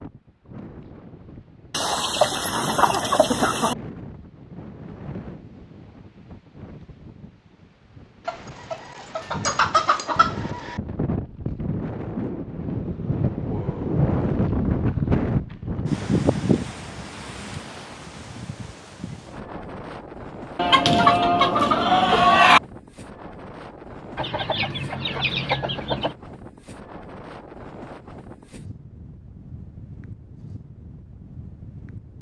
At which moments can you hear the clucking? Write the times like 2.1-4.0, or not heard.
1.7-3.8, 8.2-10.8, 20.6-22.6, 24.1-26.1.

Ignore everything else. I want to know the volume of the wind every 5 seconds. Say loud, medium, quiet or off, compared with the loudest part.
quiet, quiet, loud, loud, quiet, quiet, quiet.